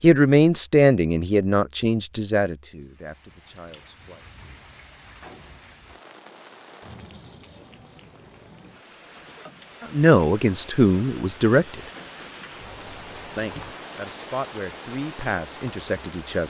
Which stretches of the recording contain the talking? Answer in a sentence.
You can hear the talking from 0.0 to 4.2 s, from 9.8 to 11.8 s and from 13.3 to 16.4 s.